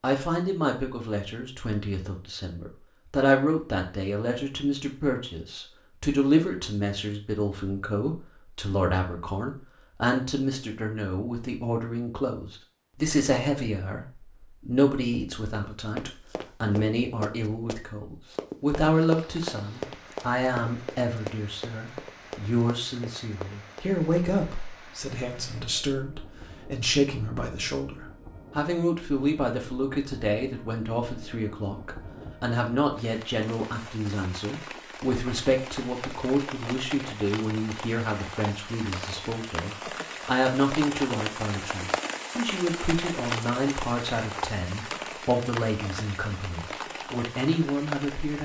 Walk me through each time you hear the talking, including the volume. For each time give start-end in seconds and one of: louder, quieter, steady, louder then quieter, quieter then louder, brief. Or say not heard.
0.0-48.3 steady.